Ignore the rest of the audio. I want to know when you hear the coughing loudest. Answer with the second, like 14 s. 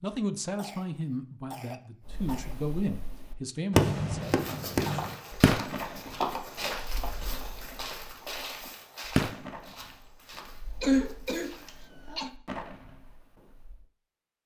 11 s.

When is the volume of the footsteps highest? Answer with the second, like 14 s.
6 s.